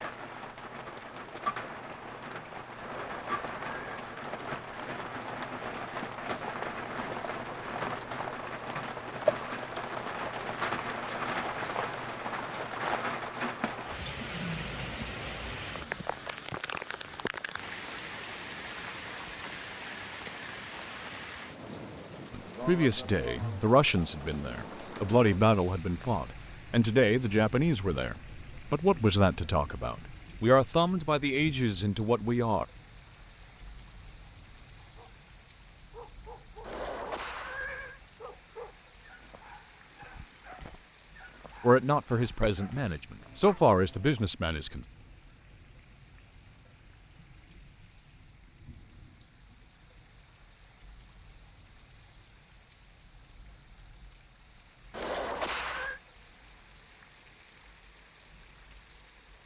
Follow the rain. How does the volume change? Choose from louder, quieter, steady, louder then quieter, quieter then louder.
quieter.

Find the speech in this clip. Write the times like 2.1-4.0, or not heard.
22.3-32.6, 41.6-44.9.